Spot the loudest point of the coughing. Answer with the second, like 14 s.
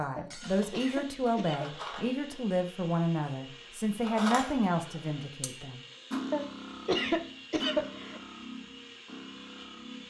7 s.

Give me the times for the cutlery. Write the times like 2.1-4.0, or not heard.
0.0-2.2, 4.0-10.0.